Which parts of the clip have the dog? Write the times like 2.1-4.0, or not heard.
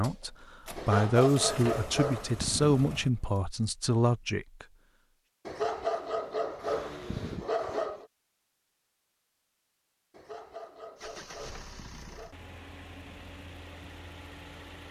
0.8-2.8, 5.5-8.1, 10.1-12.3.